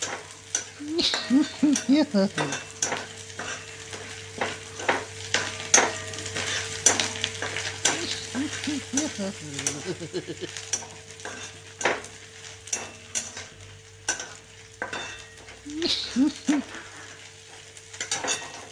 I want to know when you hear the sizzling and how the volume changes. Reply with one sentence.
The sizzling can be heard from 0.0 to 18.6 s, getting louder then quieter.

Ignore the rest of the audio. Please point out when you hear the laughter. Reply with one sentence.
You can hear the laughter from 0.8 to 2.6 s, from 7.8 to 10.5 s and from 15.7 to 16.6 s.